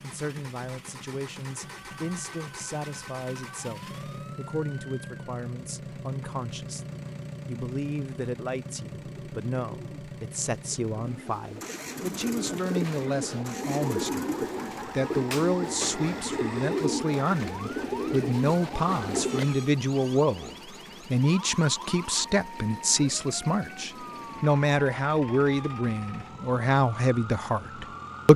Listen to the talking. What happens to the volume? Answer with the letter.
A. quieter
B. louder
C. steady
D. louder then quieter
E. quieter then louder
B.